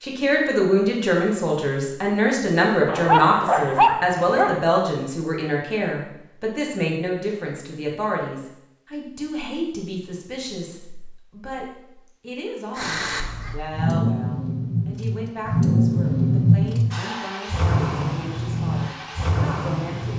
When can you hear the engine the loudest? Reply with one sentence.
The volume of the engine peaks at 16 seconds.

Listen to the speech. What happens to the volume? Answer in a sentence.
The loudness of the speech goes down.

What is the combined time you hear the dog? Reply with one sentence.
The dog can be heard for 2 seconds in total.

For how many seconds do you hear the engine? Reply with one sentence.
You can hear the engine for 7 seconds altogether.